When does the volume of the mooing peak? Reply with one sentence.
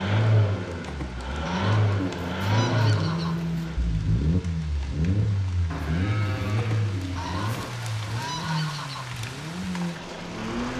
The volume of the mooing peaks at 3 seconds.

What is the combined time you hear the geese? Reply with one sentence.
You can hear the geese for 5 seconds altogether.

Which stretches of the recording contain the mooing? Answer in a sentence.
You can hear the mooing from 1.9 to 3.8 s and from 5.7 to 7.7 s.